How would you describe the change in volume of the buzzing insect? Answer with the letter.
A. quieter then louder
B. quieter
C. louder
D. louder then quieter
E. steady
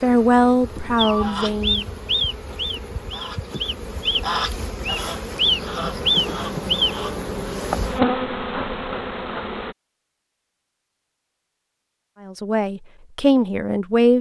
C.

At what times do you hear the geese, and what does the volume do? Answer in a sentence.
The geese can be heard from 0.9 to 7.1 s, getting quieter then louder.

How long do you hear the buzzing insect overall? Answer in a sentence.
You can hear the buzzing insect for 10 seconds altogether.